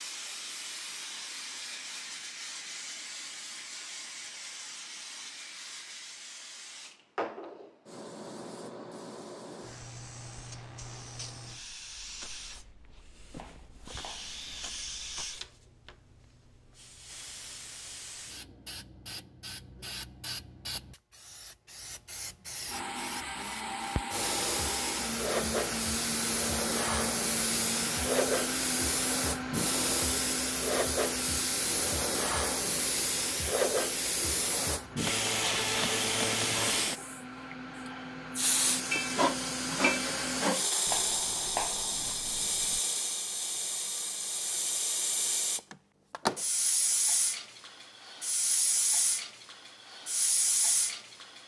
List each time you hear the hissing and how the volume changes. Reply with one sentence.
The hissing can be heard from 0.0 to 51.4 s, getting louder.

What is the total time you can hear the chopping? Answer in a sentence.
You can hear the chopping for 4 seconds altogether.